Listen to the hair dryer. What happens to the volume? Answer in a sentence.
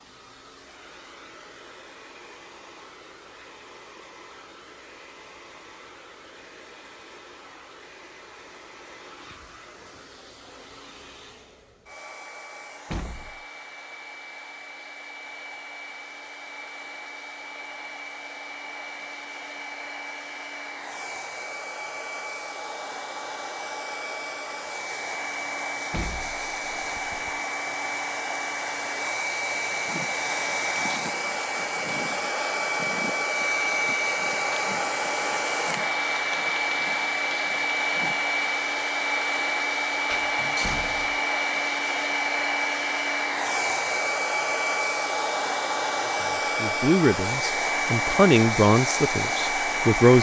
The volume of the hair dryer goes up.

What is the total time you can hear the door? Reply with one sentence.
You can hear the door for 3 seconds altogether.